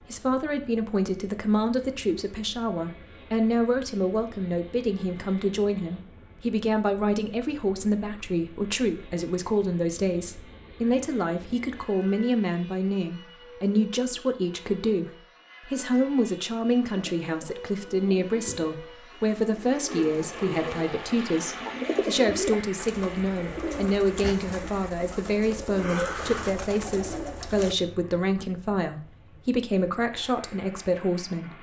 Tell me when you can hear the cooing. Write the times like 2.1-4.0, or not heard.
16.9-27.8.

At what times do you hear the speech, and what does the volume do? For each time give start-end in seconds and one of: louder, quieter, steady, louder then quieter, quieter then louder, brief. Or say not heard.
0.1-31.5 steady.